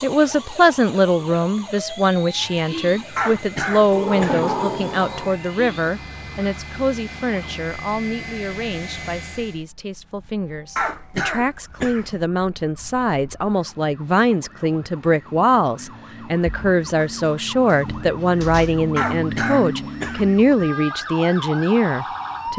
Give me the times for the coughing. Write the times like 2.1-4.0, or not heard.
3.1-4.5, 10.8-12.1, 18.9-20.4.